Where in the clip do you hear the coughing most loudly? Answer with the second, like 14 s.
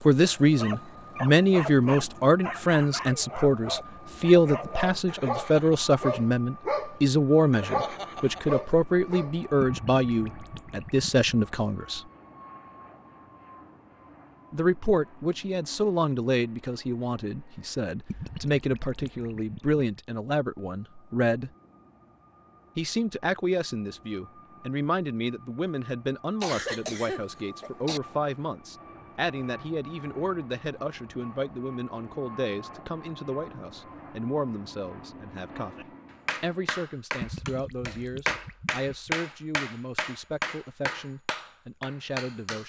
27 s.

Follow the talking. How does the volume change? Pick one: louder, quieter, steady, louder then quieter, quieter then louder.
quieter.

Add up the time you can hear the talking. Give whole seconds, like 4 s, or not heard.
39 s.